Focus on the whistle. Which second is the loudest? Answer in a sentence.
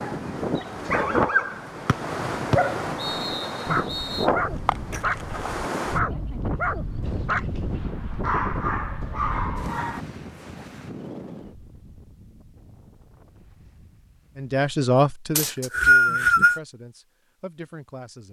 The loudest moment of the whistle is at 16 seconds.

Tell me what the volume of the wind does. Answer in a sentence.
The loudness of the wind goes down.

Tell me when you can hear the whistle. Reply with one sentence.
You can hear the whistle from 1.9 to 4.2 s and from 15.3 to 16.6 s.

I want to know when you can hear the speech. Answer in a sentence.
The speech can be heard from 14.3 to 18.2 s.